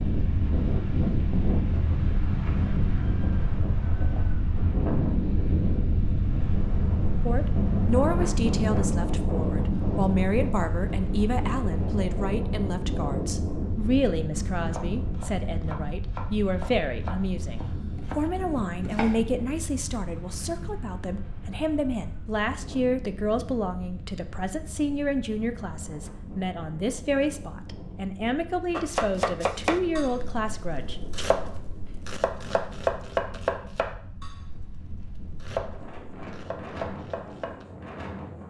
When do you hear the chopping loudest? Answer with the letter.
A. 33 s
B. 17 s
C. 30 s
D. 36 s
A.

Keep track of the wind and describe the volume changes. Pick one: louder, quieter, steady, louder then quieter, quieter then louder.
quieter.